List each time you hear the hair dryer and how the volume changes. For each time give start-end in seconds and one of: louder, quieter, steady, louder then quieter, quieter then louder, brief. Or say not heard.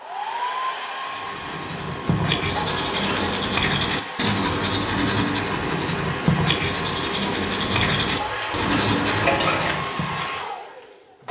0.0-11.2 steady.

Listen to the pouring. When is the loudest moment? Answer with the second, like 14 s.
9 s.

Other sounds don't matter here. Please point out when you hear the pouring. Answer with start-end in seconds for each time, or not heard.
2.0-3.5, 7.7-9.8.